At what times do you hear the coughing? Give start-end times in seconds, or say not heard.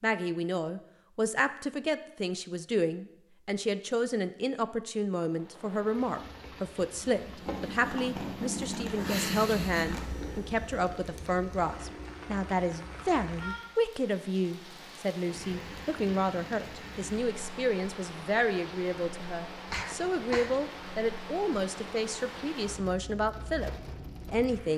19.7-20.6.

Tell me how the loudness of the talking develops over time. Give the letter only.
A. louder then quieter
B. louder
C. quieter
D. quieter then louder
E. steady
E.